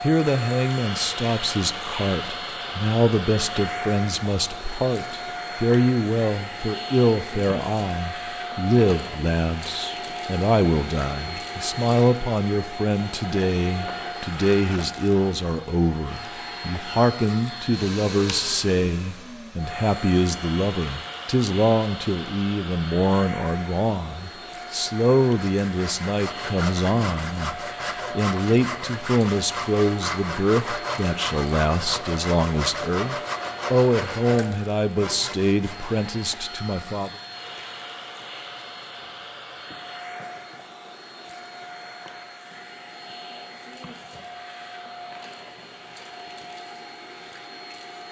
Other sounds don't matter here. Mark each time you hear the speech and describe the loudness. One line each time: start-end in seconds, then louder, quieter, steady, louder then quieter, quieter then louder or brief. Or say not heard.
0.0-37.1 steady.